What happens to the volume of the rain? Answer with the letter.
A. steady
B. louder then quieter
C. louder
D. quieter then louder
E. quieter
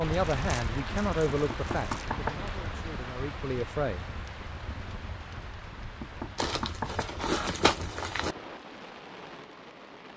E.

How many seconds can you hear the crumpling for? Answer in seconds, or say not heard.
4 s.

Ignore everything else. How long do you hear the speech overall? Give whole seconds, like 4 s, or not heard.
4 s.